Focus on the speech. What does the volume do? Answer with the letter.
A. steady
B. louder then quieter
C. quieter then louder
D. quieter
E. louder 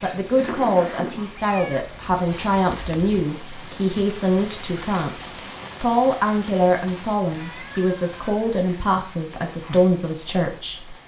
A.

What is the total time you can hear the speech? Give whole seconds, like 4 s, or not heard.
11 s.